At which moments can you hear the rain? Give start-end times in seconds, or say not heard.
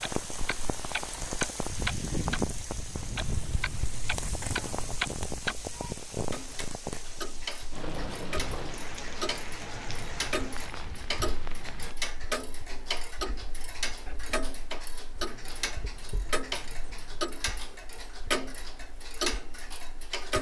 0.0-11.9.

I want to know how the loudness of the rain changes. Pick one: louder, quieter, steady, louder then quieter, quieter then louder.
quieter.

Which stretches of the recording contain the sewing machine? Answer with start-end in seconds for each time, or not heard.
not heard.